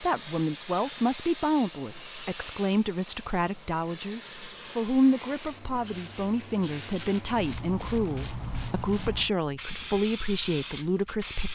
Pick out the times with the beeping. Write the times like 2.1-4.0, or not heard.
not heard.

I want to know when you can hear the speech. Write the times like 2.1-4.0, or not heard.
0.0-11.4.